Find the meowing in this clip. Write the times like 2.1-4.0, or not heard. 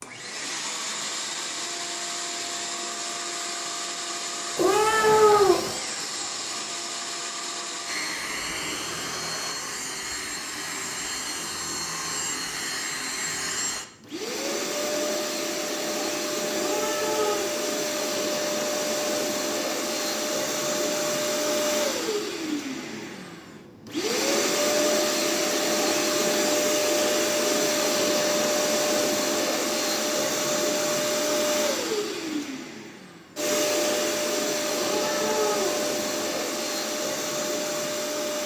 4.5-5.8, 16.5-17.5, 34.7-36.5.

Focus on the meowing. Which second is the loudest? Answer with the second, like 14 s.
5 s.